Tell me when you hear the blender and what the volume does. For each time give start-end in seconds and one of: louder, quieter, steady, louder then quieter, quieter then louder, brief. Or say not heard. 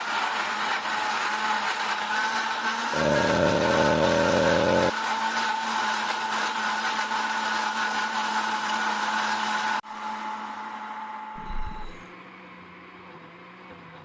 0.0-13.9 quieter.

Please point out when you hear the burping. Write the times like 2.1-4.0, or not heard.
2.9-4.9, 11.3-12.1.